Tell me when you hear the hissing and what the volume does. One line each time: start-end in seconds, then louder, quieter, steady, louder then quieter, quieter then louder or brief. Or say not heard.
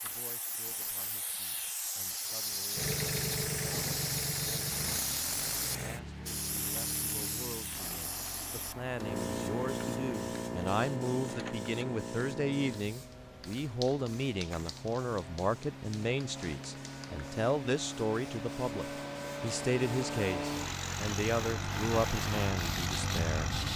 0.0-23.7 quieter then louder.